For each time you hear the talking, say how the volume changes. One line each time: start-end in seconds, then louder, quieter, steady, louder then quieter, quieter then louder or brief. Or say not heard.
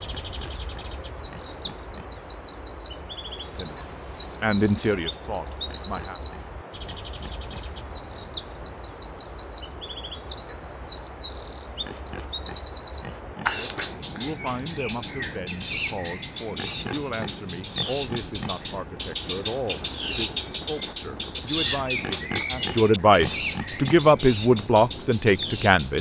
3.4-6.2 brief
13.5-25.9 louder.